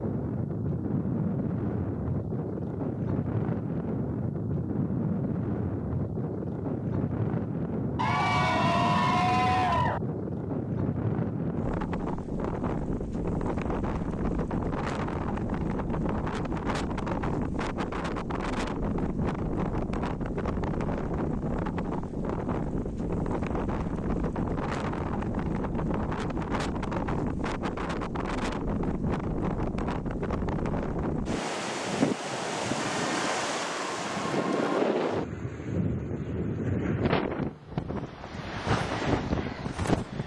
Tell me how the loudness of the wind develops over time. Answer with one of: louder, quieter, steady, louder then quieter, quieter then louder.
steady.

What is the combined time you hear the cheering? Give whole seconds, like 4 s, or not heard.
4 s.